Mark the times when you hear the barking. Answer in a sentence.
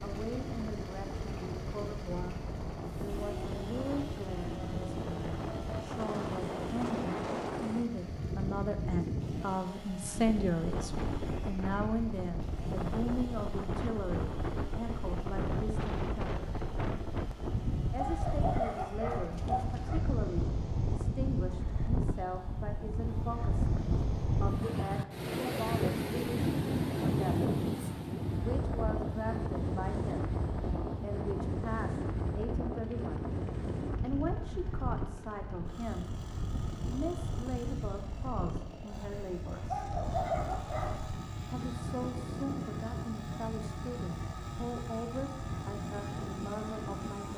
You can hear the barking from 17.9 to 20.0 s and from 39.7 to 41.1 s.